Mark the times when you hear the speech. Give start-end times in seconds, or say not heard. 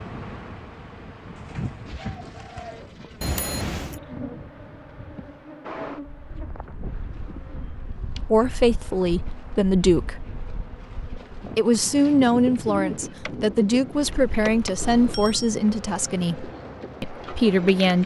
8.2-10.2, 11.6-18.0.